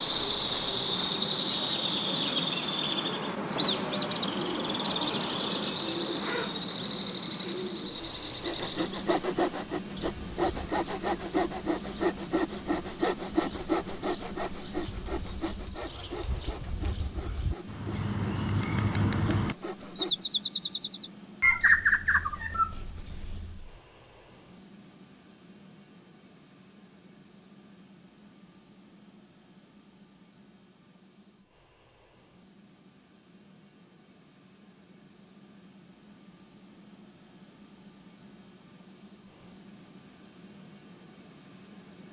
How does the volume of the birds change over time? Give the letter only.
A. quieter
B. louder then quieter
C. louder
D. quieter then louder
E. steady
D.